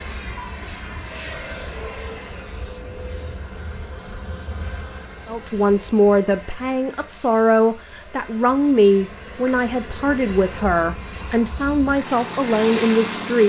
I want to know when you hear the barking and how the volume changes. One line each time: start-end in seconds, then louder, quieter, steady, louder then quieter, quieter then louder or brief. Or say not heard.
not heard.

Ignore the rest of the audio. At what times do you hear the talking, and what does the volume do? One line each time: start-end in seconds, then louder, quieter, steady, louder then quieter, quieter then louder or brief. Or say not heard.
5.2-13.4 steady.